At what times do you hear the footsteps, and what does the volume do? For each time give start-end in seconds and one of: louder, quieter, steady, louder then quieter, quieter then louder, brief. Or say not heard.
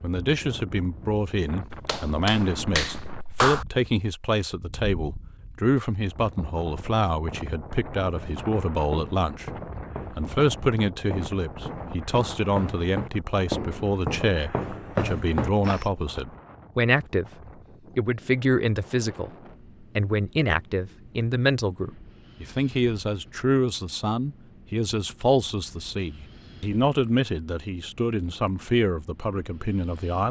8.1-15.9 louder.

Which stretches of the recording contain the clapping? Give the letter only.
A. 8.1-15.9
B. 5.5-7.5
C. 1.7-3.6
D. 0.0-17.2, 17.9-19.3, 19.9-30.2
C.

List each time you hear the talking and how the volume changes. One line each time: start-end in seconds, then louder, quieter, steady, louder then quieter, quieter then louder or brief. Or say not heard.
0.0-17.2 steady
17.9-19.3 brief
19.9-30.2 steady.